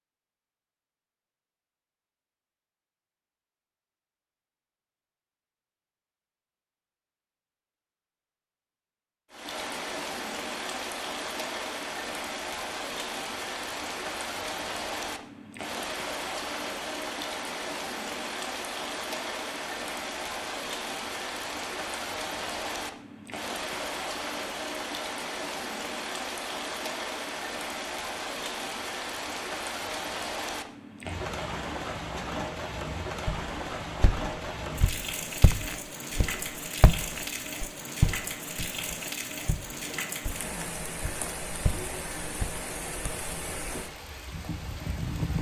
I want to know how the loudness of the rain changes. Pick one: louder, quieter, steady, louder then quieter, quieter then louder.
steady.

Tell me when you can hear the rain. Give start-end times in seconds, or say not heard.
9.3-45.3.